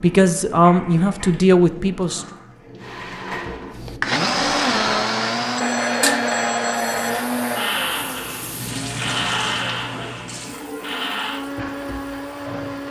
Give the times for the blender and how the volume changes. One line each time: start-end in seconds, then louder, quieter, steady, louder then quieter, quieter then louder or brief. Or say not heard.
2.8-12.8 quieter.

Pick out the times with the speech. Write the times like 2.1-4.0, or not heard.
0.0-2.2.